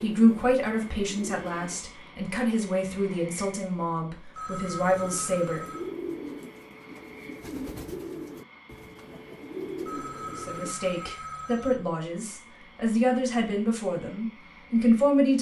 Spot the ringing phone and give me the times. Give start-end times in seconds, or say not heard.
4.3-5.9, 9.8-11.8.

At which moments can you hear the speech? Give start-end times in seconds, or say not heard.
0.0-5.7, 10.2-15.3.